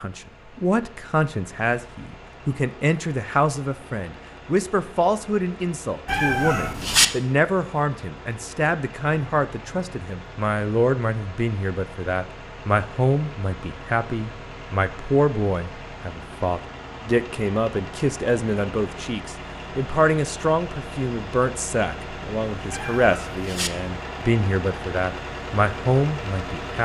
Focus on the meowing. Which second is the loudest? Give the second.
7 s.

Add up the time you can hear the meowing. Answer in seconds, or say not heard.
2 s.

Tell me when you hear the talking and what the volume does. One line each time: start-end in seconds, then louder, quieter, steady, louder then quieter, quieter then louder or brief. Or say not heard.
0.0-26.8 steady.